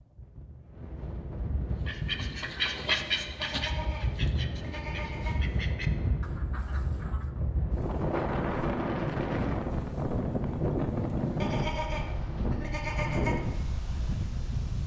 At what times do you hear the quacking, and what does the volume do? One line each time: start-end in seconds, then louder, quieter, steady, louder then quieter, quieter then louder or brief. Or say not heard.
1.8-7.3 quieter.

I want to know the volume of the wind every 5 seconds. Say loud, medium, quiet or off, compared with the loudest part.
medium, loud, loud.